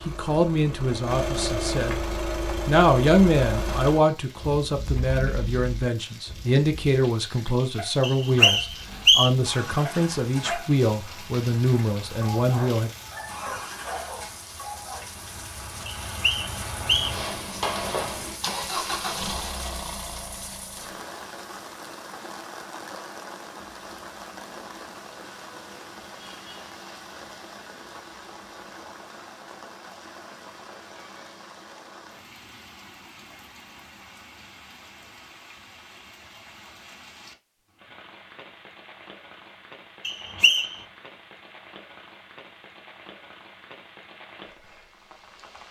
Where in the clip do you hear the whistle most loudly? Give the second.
9 s.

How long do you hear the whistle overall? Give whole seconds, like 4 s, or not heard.
3 s.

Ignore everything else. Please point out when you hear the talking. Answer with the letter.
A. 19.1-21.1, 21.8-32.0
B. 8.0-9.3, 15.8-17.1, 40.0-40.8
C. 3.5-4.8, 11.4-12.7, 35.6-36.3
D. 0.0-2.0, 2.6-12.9
D.